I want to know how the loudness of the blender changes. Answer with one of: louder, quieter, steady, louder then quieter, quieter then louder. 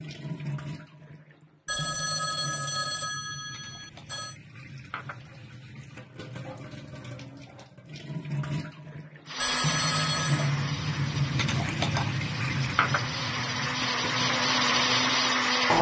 quieter then louder.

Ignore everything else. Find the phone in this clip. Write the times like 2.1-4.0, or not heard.
1.6-4.3, 9.4-10.5.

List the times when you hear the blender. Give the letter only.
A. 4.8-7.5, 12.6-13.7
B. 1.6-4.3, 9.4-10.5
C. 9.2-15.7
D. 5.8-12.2
C.